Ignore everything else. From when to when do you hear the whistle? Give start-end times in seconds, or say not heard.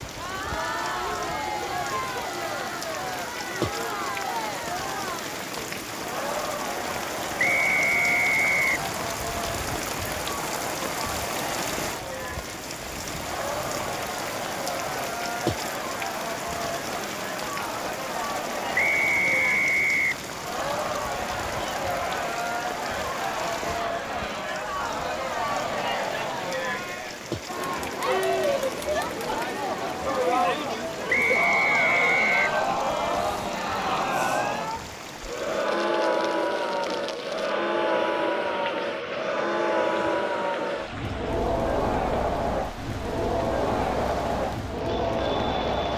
7.3-8.8, 18.8-20.2, 31.1-32.5.